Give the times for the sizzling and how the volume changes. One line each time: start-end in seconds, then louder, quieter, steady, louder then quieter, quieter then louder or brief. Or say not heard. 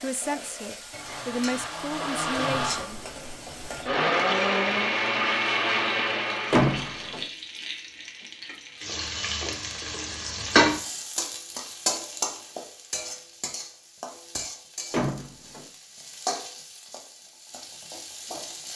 0.0-18.7 louder then quieter.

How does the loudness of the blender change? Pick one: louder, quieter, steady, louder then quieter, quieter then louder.
louder.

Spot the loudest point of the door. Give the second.
7 s.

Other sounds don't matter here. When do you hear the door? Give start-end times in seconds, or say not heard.
6.5-7.2, 14.9-15.7.